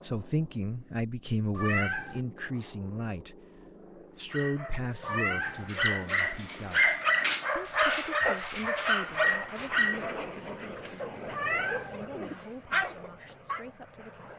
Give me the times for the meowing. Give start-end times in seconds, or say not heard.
1.6-2.2, 5.0-5.7, 11.3-12.0.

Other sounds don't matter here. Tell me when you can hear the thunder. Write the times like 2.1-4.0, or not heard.
not heard.